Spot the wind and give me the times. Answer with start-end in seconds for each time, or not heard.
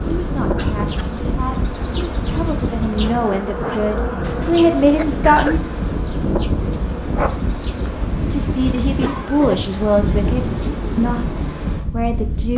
0.0-12.5.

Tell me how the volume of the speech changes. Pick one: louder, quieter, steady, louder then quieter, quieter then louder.
louder then quieter.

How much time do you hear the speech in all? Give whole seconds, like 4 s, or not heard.
10 s.